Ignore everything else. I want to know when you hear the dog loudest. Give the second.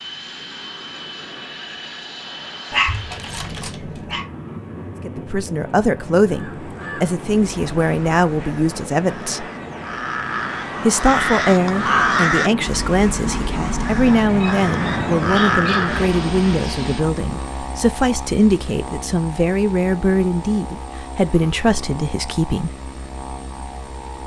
3 s.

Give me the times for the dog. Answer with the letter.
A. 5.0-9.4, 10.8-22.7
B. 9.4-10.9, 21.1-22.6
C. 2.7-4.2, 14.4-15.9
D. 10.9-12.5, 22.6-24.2
C.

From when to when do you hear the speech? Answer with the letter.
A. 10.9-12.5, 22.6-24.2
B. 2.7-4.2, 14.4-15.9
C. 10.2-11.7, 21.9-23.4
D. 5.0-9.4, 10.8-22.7
D.